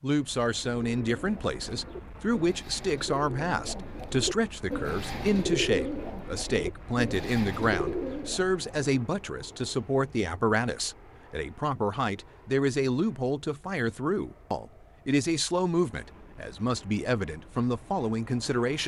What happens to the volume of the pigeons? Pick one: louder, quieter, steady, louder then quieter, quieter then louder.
louder.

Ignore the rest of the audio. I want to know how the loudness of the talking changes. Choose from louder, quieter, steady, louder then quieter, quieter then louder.
steady.